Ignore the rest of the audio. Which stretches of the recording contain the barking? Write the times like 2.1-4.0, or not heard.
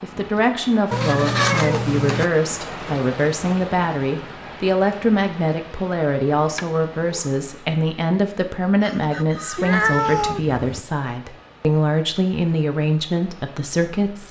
not heard.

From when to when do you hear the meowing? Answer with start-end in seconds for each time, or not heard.
0.9-2.3, 6.3-7.3, 9.6-10.8.